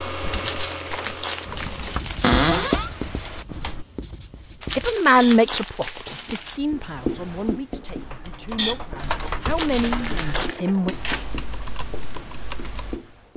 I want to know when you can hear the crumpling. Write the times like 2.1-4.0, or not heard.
0.3-2.4, 4.6-6.6, 9.4-10.5.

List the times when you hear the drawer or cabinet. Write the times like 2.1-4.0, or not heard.
2.2-2.9, 10.3-11.3.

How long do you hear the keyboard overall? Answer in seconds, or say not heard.
9 s.